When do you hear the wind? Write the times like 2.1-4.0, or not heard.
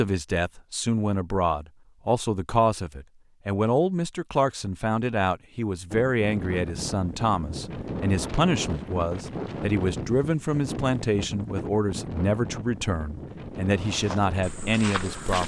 5.9-15.4.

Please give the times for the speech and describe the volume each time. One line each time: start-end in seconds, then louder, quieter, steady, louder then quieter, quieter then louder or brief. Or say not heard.
0.0-15.4 steady.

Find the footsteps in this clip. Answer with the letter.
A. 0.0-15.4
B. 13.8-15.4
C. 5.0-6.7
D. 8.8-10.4
B.